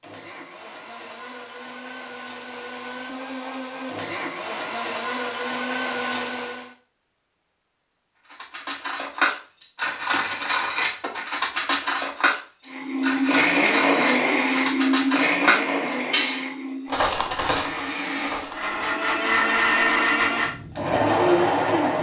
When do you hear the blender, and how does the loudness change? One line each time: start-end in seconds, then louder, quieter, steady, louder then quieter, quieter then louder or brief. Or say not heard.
0.0-6.7 louder
12.7-21.9 quieter then louder.